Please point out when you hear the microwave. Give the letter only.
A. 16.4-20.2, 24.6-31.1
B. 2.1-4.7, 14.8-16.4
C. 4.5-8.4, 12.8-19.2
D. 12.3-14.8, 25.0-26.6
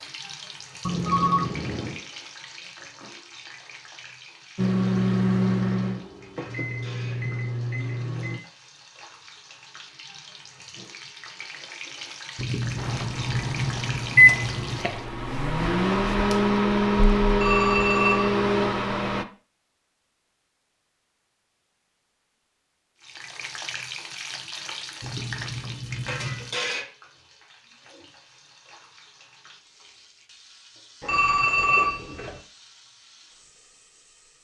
C.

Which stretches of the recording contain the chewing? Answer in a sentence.
The chewing can be heard from 12.3 to 14.8 s and from 25.0 to 26.6 s.